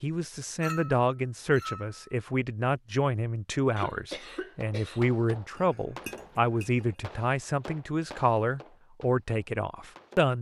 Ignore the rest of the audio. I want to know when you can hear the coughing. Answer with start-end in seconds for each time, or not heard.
3.8-5.0.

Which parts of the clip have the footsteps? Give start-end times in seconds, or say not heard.
not heard.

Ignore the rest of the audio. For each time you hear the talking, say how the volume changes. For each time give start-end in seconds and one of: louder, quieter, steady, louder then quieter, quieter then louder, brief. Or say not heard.
0.0-10.3 steady.